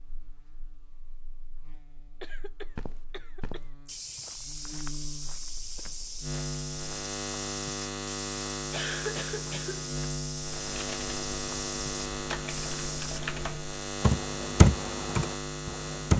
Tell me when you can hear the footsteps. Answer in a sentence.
The footsteps can be heard from 2.8 to 13.2 s.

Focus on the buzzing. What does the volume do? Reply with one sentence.
The loudness of the buzzing goes up.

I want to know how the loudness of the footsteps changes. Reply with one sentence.
The volume of the footsteps stays about the same.